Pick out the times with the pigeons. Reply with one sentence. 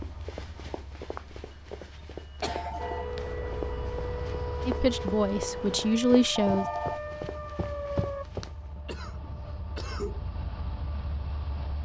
You can't hear the pigeons here.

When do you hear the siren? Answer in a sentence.
You can hear the siren from 2.8 to 8.2 s.